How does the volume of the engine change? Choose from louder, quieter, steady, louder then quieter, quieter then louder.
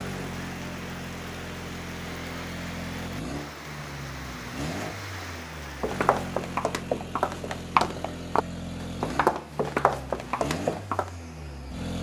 steady.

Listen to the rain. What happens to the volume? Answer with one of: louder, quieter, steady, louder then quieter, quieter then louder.
steady.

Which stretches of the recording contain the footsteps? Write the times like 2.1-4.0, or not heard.
5.8-11.1.